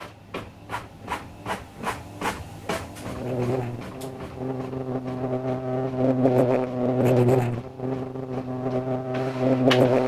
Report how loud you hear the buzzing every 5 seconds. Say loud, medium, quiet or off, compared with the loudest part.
medium, loud.